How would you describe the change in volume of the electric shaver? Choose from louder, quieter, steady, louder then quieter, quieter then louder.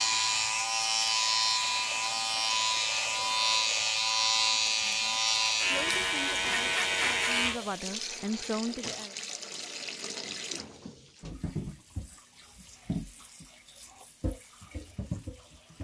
steady.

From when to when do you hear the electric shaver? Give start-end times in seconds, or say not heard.
0.0-7.6.